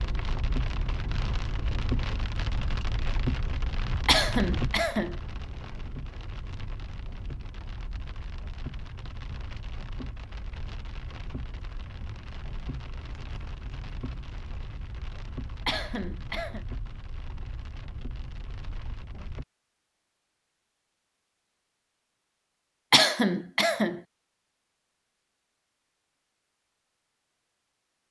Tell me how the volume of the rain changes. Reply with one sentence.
The loudness of the rain goes down.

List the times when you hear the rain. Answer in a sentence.
The rain can be heard from 0.0 to 19.4 s.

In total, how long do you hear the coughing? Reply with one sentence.
The coughing can be heard for 3 seconds in total.